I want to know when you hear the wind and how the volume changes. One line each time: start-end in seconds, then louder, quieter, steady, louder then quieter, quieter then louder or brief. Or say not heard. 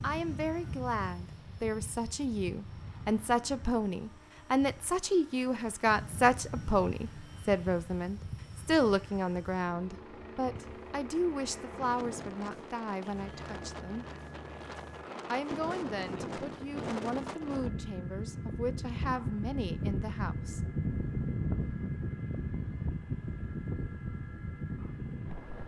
0.0-25.6 louder.